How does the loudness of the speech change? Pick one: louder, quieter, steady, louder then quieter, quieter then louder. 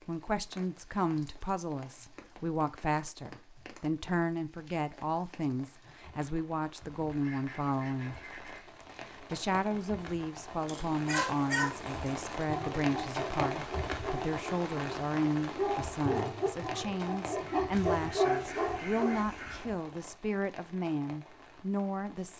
steady.